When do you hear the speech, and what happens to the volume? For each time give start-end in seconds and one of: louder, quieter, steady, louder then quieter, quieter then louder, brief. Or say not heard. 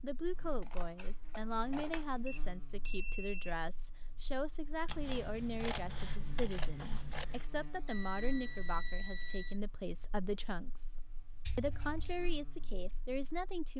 0.0-10.9 steady
11.6-13.7 brief.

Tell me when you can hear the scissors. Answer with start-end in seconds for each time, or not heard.
0.6-2.0, 4.8-7.5, 11.4-12.2.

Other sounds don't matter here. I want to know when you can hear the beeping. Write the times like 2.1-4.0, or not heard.
2.2-3.5, 7.8-9.6.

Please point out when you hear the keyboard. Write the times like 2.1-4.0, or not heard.
not heard.